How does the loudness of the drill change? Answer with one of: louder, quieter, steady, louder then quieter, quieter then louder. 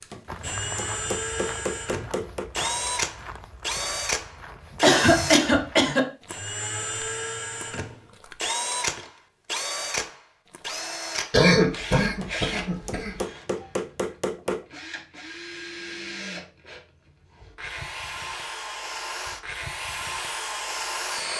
quieter then louder.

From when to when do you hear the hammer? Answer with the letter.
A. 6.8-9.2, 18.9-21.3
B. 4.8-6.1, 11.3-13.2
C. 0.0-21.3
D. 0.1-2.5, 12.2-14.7
D.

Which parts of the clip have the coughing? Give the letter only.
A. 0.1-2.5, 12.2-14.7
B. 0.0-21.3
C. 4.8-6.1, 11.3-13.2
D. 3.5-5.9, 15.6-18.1
C.